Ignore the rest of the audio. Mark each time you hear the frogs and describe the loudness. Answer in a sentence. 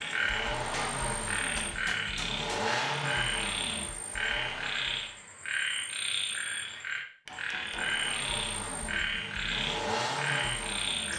You can hear the frogs from 0.0 to 11.1 s, at a steady volume.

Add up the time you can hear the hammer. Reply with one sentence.
You can hear the hammer for 3 seconds altogether.